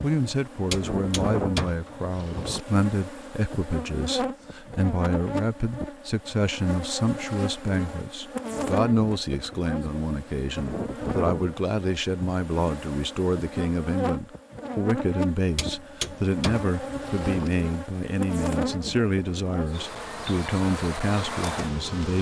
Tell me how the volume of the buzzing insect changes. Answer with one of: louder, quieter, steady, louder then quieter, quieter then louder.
steady.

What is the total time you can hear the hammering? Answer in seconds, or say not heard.
4 s.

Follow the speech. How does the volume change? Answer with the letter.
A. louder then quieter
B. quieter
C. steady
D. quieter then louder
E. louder
C.